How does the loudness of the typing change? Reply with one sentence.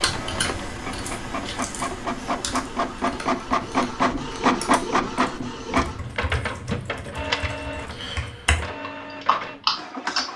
The volume of the typing goes down, then up.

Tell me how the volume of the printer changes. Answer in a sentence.
The volume of the printer goes up, then down.